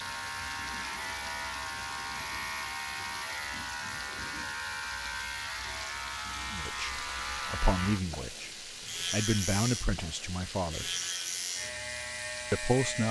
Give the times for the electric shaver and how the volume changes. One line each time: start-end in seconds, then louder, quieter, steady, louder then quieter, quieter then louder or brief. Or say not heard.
0.0-13.0 steady.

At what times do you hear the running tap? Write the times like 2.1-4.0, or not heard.
0.0-13.0.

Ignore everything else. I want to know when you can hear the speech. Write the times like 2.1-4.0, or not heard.
6.5-10.9, 12.5-13.0.